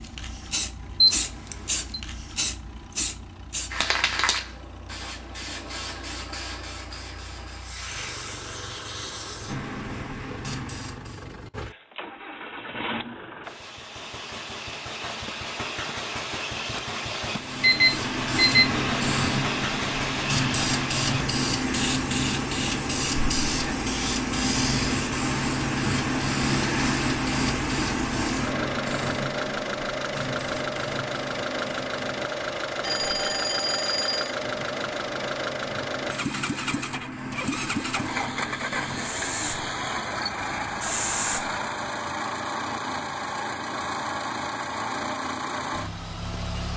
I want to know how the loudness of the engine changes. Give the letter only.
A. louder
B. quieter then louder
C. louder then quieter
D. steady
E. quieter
A.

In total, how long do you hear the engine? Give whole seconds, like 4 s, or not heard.
47 s.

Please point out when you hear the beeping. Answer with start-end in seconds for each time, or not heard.
1.0-2.0, 17.6-18.6, 32.8-34.4.